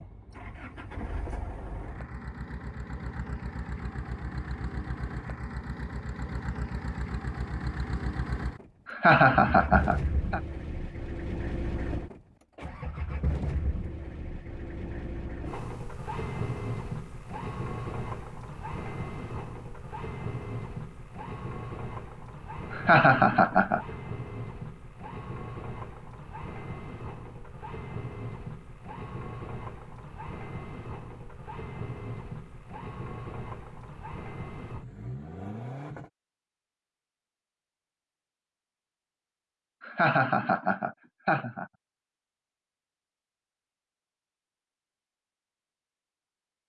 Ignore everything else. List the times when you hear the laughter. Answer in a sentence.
The laughter can be heard from 8.8 to 10.4 s, from 22.7 to 23.8 s and from 39.8 to 41.6 s.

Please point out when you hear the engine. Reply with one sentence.
You can hear the engine from 0.0 to 36.1 s.